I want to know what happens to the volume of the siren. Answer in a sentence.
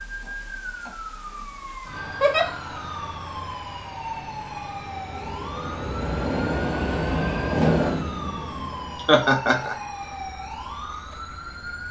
The volume of the siren stays about the same.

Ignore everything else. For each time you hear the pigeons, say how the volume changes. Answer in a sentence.
You can't hear the pigeons here.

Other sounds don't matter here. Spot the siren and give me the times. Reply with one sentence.
You can hear the siren from 0.0 to 11.8 s.